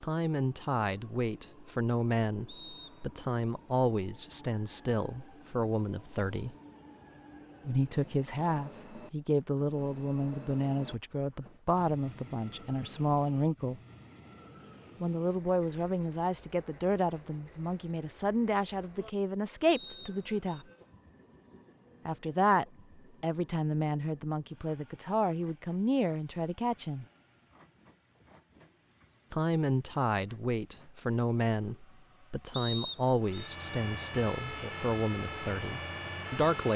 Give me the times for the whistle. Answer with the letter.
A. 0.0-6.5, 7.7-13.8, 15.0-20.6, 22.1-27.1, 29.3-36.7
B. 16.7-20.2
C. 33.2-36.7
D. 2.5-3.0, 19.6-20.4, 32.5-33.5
D.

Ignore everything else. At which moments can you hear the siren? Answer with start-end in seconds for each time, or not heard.
33.2-36.7.